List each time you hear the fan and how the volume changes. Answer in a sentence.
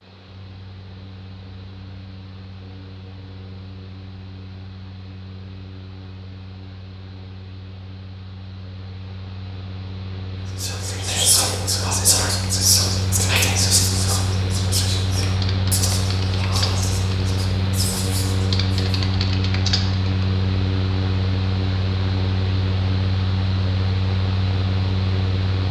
You can hear the fan from 0.0 to 25.6 s, getting louder.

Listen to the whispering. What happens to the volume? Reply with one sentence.
The volume of the whispering goes down.